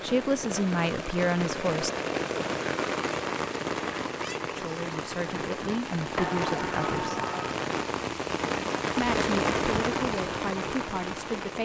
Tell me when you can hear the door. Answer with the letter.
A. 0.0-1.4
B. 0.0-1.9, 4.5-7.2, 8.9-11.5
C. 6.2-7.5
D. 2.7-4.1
C.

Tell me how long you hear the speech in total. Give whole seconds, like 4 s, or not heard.
7 s.